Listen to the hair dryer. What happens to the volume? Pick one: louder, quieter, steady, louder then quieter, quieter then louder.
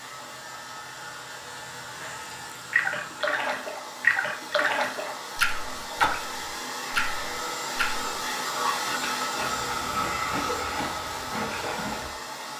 louder.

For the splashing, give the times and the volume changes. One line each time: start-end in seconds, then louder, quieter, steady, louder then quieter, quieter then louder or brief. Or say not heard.
2.0-12.1 quieter.